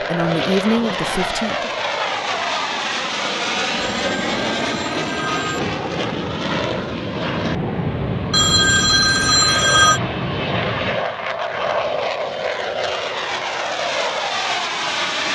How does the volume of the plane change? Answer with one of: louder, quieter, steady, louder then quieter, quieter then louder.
steady.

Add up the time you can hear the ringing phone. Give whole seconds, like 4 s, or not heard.
4 s.